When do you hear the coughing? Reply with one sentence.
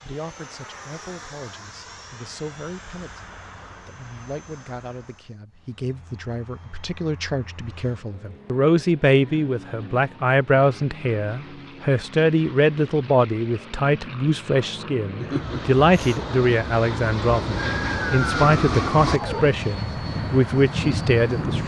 The coughing can be heard from 15.2 to 16.3 s.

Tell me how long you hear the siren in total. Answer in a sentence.
The siren can be heard for 2 seconds in total.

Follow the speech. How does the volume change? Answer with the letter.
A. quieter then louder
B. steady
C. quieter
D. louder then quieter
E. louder
E.